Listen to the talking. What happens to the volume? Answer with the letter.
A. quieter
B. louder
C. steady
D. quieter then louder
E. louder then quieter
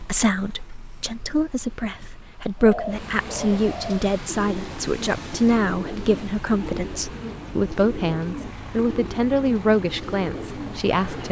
B.